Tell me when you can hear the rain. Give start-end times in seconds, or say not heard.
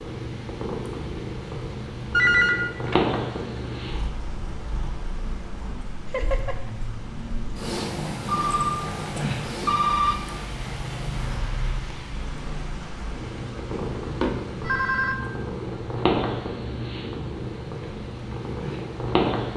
0.0-19.5.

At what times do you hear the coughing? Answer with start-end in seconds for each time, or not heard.
6.0-6.7, 11.2-11.8.